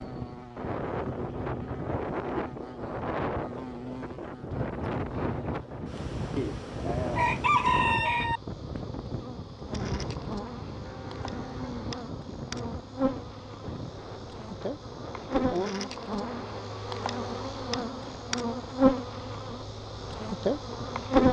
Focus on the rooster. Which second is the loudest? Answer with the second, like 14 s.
8 s.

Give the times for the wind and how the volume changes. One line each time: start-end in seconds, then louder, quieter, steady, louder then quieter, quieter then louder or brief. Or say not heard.
0.0-21.1 quieter.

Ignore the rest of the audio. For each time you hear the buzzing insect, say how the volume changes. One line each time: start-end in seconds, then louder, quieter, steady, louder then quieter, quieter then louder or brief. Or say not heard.
0.0-21.2 louder.